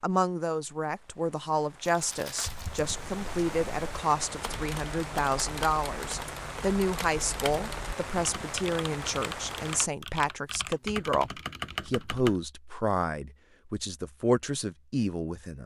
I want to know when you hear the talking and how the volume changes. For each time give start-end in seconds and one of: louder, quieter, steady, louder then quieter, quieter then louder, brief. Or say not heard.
0.0-15.6 steady.